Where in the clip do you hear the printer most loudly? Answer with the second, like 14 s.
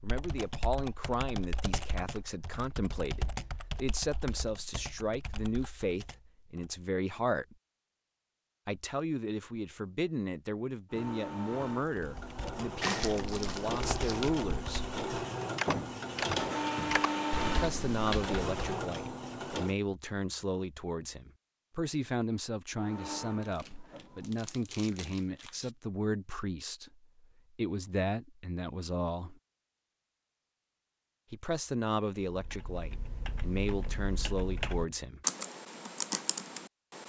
17 s.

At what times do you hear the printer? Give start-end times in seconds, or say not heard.
10.9-19.8, 22.8-24.4.